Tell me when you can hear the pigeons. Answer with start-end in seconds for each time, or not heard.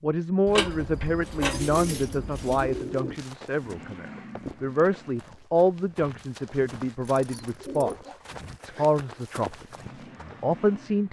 1.5-3.2, 7.2-8.2.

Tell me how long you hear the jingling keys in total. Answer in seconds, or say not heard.
3 s.